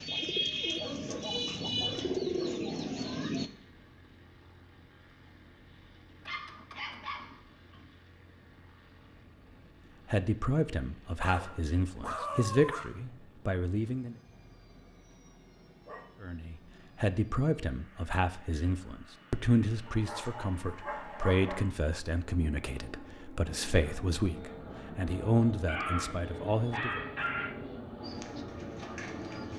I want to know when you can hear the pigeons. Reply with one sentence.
You can hear the pigeons from 0.0 to 3.5 s and from 28.0 to 29.5 s.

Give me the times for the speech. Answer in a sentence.
The speech can be heard from 10.1 to 14.2 s and from 16.2 to 27.0 s.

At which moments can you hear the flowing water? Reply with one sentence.
You can't hear the flowing water here.